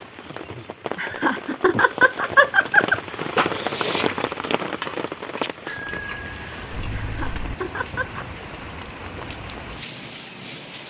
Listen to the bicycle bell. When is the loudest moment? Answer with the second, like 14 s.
6 s.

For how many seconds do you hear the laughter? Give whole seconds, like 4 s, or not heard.
4 s.